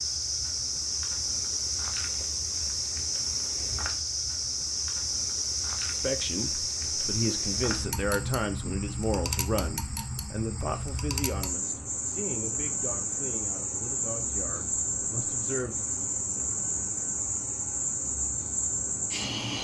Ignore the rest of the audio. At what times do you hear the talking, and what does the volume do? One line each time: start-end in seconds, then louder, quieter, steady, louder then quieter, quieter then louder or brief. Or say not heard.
5.9-15.9 quieter.